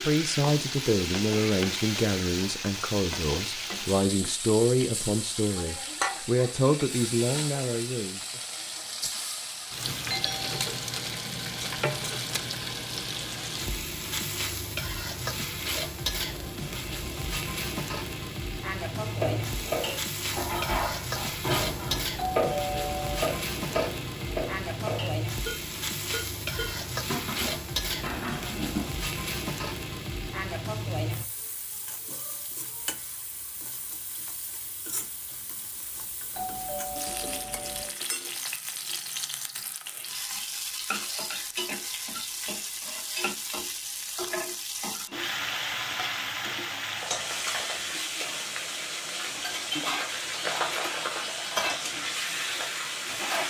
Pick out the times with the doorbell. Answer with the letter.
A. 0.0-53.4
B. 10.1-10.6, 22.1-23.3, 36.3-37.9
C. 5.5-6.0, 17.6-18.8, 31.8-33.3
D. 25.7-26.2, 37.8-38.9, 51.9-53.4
B.